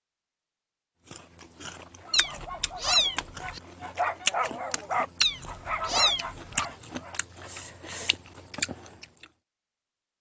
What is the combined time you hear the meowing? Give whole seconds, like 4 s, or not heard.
3 s.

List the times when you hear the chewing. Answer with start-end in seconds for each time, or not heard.
1.1-9.2.